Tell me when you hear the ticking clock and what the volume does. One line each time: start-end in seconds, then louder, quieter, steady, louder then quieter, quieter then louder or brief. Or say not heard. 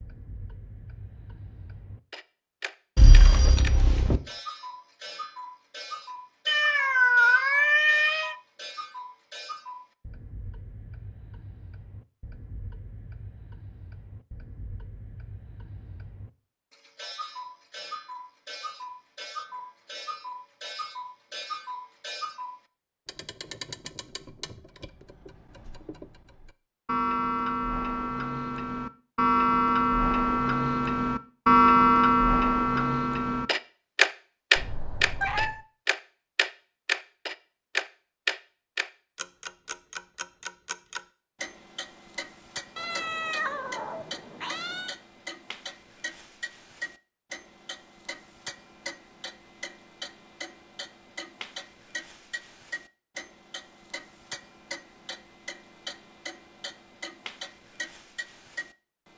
0.0-59.1 louder then quieter.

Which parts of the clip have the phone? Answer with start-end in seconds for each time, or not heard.
3.0-4.2.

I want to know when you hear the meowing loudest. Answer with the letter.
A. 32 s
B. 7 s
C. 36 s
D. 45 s
B.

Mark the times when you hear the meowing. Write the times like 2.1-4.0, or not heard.
6.5-8.3, 34.5-35.6, 42.8-45.0.